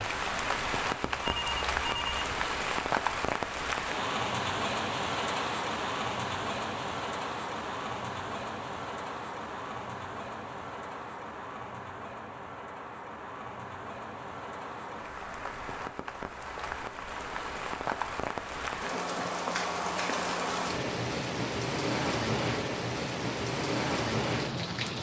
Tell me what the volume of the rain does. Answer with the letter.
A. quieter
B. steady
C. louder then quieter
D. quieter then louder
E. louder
D.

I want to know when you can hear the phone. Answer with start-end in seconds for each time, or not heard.
1.1-2.5.